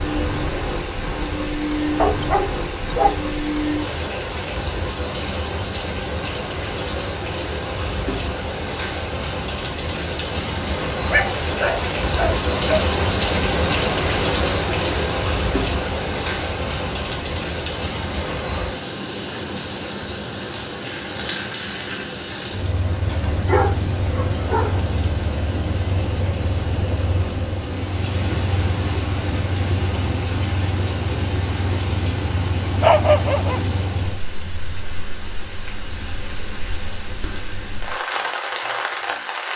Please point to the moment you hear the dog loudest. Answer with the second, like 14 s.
33 s.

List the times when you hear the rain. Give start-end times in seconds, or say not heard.
0.0-39.5.